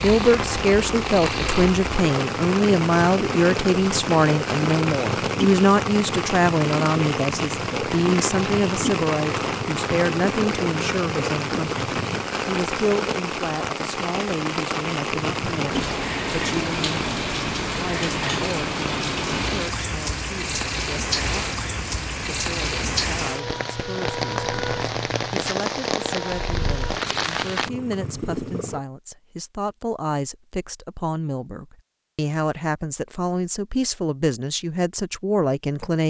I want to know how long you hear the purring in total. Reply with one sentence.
You can hear the purring for 26 seconds altogether.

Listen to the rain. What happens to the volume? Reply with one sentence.
The volume of the rain stays about the same.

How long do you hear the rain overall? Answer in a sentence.
You can hear the rain for 28 seconds altogether.